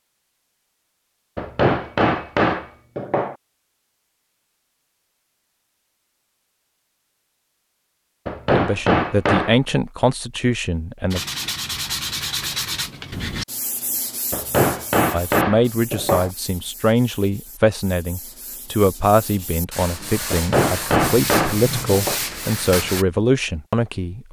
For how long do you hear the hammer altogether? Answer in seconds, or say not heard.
7 s.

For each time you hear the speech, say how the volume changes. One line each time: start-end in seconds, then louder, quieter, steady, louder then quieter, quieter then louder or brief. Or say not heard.
8.5-11.2 brief
15.1-24.2 steady.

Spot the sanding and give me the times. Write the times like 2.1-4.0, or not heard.
11.1-23.1.